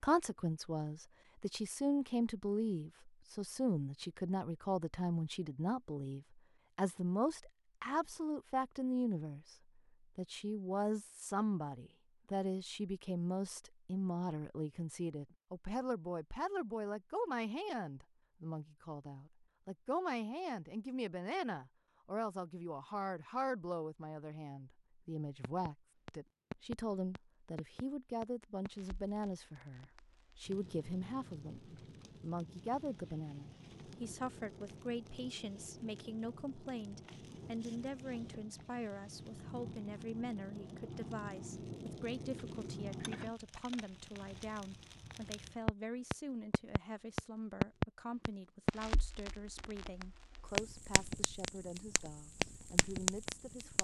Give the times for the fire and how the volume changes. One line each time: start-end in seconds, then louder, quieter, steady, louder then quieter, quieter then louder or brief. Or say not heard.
25.4-53.7 louder.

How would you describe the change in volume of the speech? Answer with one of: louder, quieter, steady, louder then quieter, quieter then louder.
quieter.